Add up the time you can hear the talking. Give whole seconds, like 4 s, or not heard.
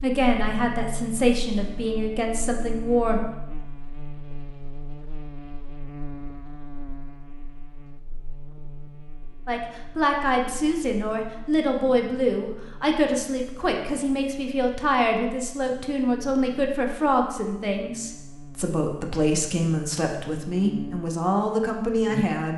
16 s.